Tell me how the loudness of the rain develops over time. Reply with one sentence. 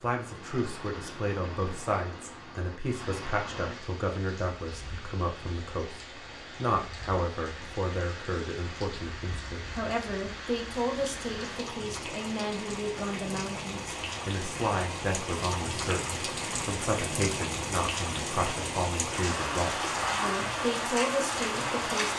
The loudness of the rain goes up.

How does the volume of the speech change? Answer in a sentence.
The loudness of the speech stays about the same.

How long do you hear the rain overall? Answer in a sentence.
The rain can be heard for 22 seconds in total.